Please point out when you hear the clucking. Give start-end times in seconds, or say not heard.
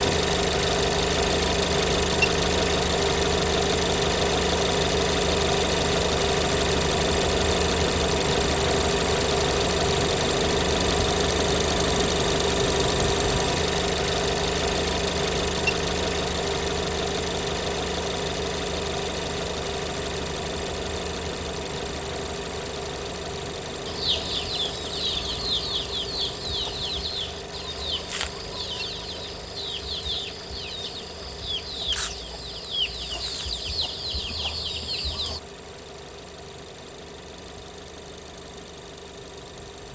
23.9-35.4.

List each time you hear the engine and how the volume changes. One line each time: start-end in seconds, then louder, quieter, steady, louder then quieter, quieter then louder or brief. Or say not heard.
0.0-39.8 quieter.